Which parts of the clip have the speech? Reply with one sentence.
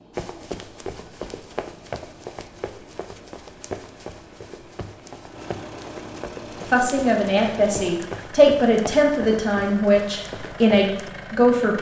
You can hear the speech from 6.7 to 11.7 s.